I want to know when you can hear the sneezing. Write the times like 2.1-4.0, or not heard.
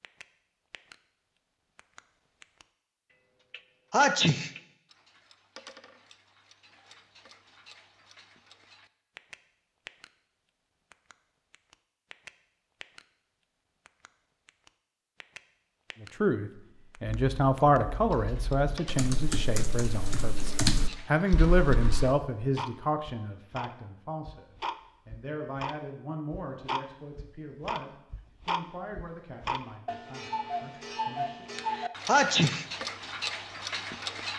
3.9-4.5, 32.0-32.6.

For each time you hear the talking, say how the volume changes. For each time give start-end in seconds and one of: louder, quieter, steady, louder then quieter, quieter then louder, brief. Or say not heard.
16.0-31.4 quieter.